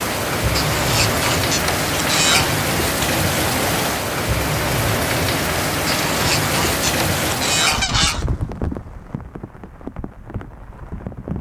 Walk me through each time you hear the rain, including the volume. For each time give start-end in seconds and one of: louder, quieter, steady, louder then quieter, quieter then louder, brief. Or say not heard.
0.0-11.3 quieter.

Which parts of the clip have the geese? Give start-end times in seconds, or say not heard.
0.6-2.5, 5.8-8.2.